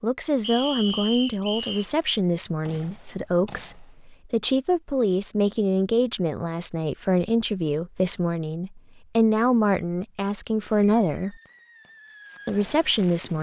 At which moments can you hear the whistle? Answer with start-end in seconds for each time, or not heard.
0.4-1.9.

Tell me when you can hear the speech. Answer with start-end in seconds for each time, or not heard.
0.0-11.3, 12.4-13.3.